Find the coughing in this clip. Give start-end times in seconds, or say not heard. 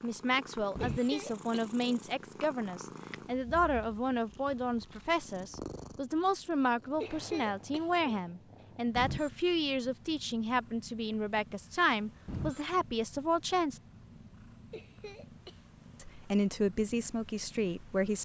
0.8-1.8, 7.0-8.2, 14.7-15.7.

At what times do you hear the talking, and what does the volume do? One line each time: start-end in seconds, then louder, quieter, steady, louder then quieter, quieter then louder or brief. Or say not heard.
0.0-13.8 steady
16.0-18.2 brief.